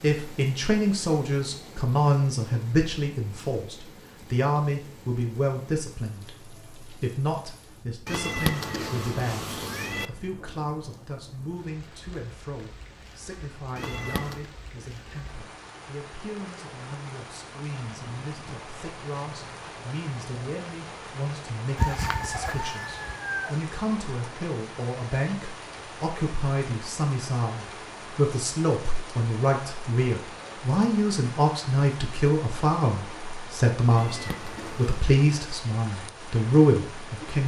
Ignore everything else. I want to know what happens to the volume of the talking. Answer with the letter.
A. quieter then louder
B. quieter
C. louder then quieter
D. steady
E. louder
A.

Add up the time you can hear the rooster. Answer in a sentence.
The rooster can be heard for 2 seconds in total.